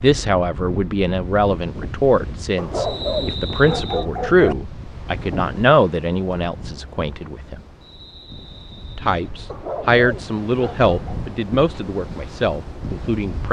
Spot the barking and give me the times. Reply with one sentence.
The barking can be heard from 2.5 to 4.5 s and from 9.5 to 11.2 s.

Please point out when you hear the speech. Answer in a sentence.
You can hear the speech from 0.0 to 7.5 s and from 8.9 to 13.4 s.